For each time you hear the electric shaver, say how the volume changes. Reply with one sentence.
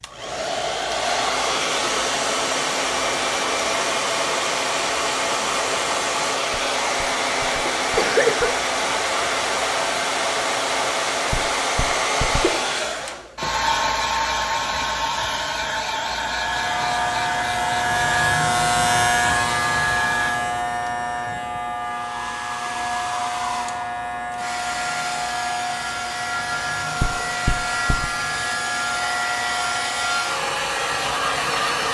The electric shaver can be heard from 16.1 to 30.4 s, getting quieter.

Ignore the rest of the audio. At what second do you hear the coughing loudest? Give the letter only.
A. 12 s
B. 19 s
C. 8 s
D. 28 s
C.